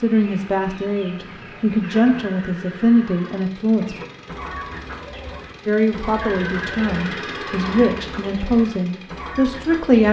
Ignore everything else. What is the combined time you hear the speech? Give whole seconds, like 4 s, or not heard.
8 s.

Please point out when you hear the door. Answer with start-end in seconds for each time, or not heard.
not heard.